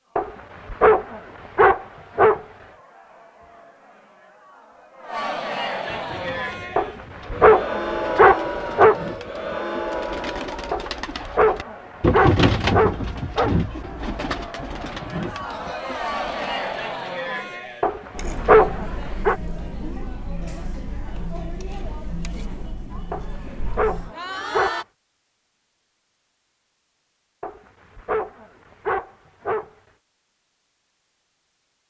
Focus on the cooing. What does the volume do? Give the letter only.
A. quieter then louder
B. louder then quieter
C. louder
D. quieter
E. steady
B.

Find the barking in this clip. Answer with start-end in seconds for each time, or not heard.
0.1-2.5, 6.8-8.9, 10.7-13.6, 17.8-19.4, 23.1-24.8, 27.4-29.7.